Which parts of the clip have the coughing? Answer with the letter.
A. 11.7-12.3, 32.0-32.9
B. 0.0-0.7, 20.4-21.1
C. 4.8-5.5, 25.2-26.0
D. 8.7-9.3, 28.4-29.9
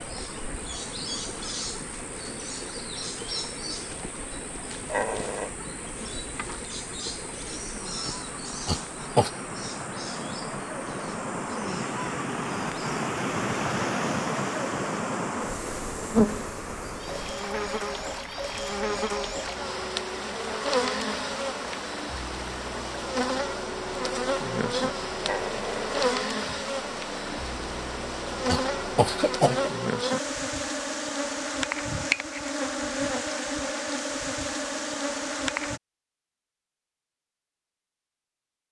D.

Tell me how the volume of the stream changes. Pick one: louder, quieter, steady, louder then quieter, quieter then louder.
louder then quieter.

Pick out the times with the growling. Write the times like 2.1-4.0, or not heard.
4.8-5.5, 25.2-26.0.